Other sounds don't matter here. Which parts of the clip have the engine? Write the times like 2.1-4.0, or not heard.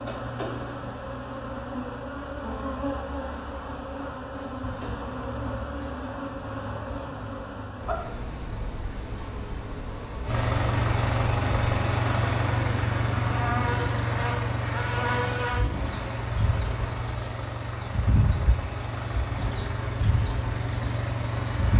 10.2-21.7.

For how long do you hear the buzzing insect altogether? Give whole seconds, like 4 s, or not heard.
22 s.